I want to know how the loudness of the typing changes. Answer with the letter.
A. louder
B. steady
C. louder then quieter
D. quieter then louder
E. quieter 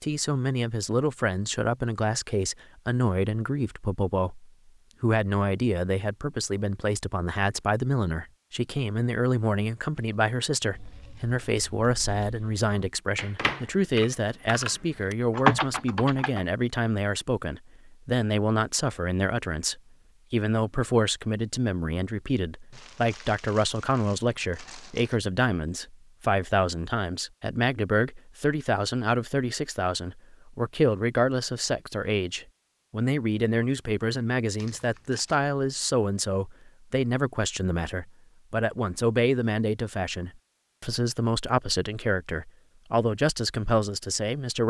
A.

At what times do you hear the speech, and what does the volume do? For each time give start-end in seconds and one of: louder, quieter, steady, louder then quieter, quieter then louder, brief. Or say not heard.
0.0-44.6 steady.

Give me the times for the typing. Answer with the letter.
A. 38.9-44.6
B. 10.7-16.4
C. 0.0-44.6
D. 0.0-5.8
B.